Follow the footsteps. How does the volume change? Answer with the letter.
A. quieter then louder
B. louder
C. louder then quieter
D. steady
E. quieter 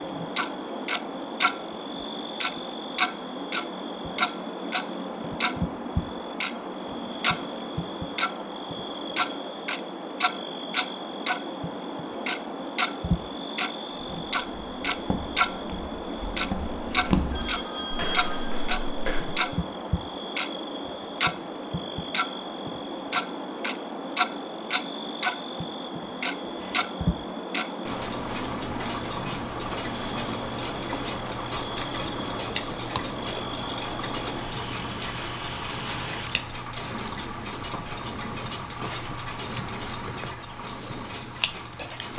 C.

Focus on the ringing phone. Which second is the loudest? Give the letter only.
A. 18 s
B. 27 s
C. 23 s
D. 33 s
A.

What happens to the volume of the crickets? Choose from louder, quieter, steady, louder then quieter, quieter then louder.
steady.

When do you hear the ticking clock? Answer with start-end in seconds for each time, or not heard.
0.0-1.6, 2.4-15.5, 16.4-42.1.